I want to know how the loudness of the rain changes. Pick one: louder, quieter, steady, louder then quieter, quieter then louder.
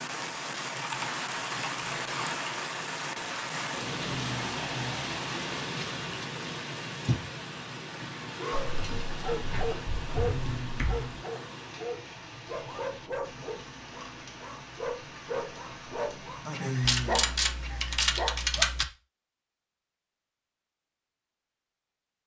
quieter.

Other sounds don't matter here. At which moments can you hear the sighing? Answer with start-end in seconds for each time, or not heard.
4.0-5.1, 10.2-11.2, 16.4-17.4.